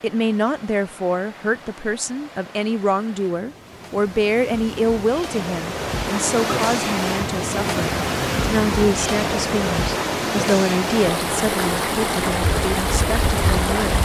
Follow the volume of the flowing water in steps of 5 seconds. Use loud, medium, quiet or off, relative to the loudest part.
quiet, loud, loud.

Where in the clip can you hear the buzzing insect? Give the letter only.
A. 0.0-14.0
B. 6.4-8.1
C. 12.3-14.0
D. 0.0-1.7
C.